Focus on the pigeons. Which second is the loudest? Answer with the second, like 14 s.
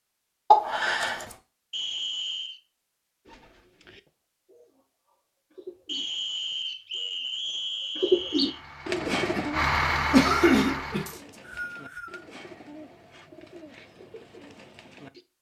8 s.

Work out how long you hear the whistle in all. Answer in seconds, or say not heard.
5 s.